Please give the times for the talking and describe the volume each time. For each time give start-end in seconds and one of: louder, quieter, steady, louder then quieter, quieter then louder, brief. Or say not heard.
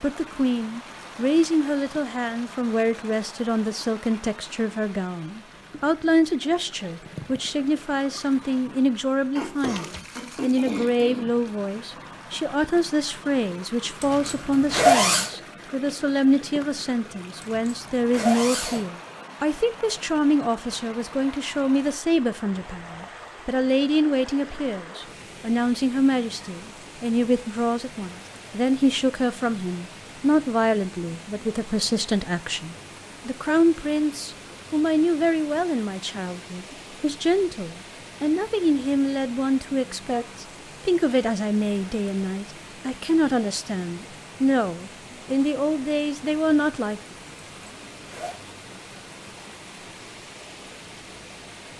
0.0-47.0 steady.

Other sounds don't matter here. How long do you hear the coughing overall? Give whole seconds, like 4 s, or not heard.
2 s.